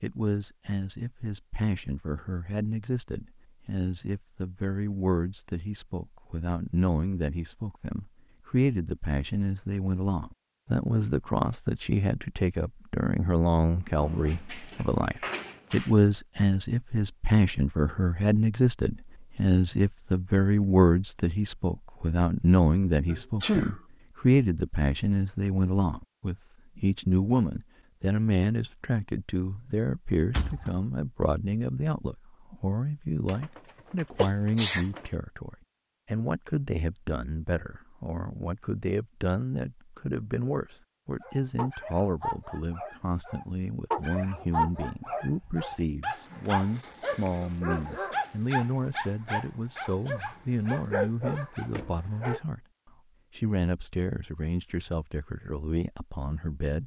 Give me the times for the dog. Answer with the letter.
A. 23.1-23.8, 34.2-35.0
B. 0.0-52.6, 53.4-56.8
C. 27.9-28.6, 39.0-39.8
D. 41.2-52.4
D.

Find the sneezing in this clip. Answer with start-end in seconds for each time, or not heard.
23.1-23.8, 34.2-35.0.